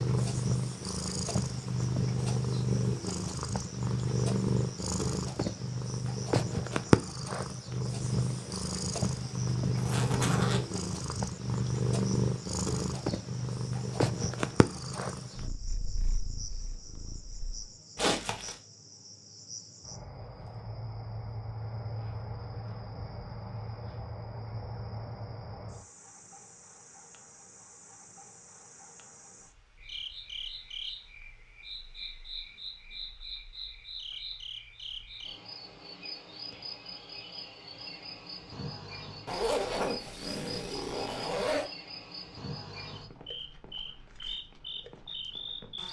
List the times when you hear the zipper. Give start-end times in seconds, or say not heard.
9.8-10.6, 17.9-18.6, 39.2-41.7.